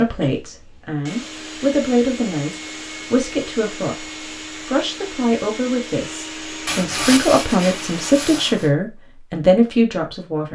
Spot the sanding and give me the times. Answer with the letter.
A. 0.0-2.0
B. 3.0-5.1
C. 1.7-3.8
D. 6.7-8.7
D.